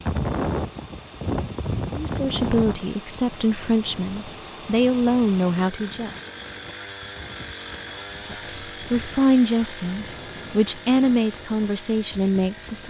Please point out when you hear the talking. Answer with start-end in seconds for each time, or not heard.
1.9-6.2, 8.3-12.8.